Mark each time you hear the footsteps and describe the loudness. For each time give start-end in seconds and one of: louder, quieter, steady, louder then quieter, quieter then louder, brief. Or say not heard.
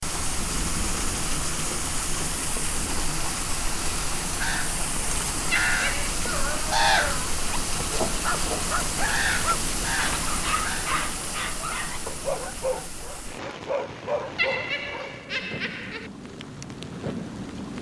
not heard.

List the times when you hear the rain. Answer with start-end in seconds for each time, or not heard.
0.0-17.7.